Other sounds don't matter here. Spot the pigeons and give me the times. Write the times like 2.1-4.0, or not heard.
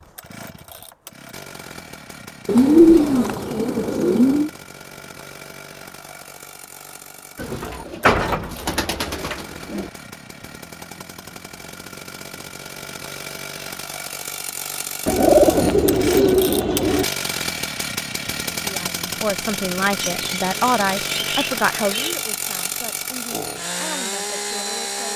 2.5-4.5, 7.3-9.9, 15.1-17.1, 20.0-22.2.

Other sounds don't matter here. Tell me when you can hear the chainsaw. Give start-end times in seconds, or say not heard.
0.0-25.1.